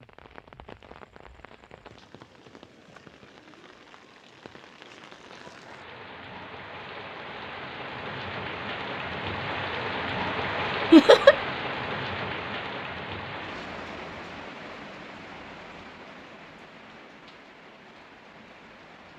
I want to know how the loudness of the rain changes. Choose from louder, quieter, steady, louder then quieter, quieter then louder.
louder then quieter.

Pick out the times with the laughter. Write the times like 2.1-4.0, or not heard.
10.9-11.3.